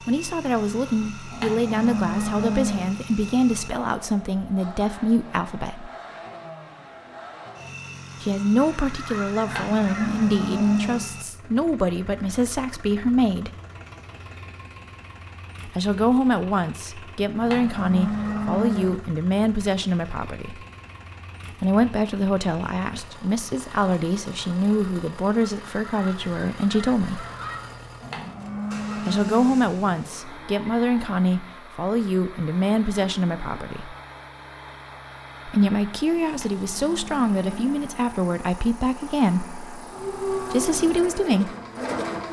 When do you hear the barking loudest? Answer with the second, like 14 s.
40 s.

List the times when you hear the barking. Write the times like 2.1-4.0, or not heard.
39.9-42.2.